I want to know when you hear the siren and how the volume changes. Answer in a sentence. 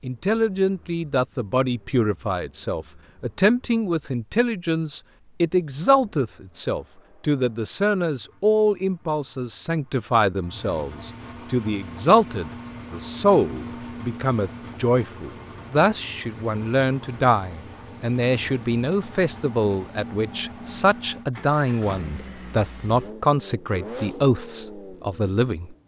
You can't hear the siren here.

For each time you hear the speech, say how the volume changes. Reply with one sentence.
You can hear the speech from 0.0 to 25.8 s, at a steady volume.